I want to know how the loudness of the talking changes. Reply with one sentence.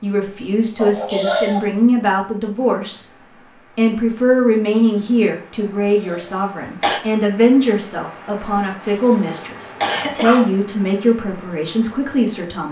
The volume of the talking stays about the same.